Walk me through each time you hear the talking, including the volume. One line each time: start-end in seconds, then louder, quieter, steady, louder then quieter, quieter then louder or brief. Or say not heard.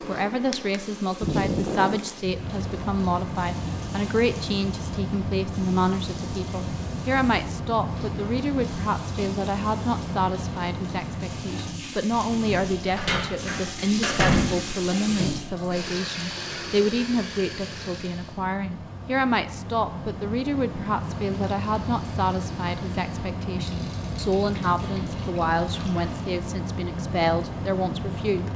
0.1-28.5 steady.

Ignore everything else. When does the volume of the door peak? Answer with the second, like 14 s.
14 s.